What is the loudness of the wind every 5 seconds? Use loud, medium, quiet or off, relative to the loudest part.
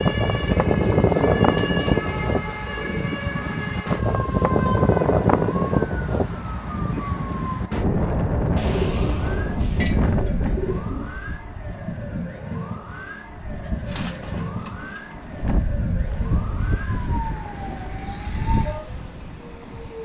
loud, loud, medium, medium.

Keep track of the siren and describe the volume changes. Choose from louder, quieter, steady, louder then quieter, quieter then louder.
steady.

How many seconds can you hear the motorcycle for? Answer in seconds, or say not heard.
not heard.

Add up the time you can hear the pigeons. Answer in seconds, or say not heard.
7 s.